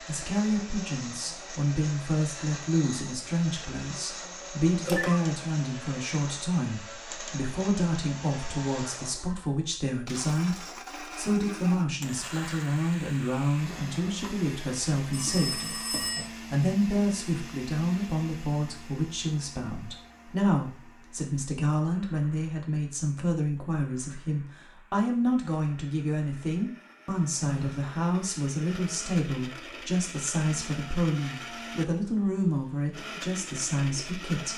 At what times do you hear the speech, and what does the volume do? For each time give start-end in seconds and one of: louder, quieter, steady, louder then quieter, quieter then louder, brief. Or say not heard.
0.1-34.5 steady.